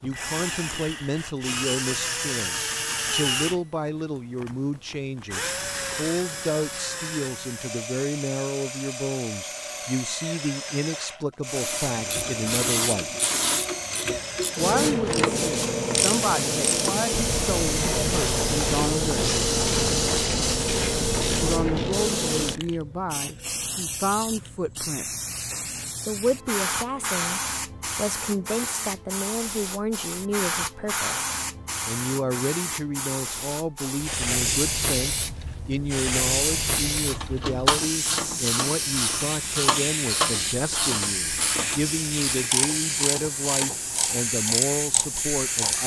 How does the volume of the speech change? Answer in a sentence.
The volume of the speech stays about the same.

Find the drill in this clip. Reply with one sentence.
The drill can be heard from 0.0 to 20.6 s.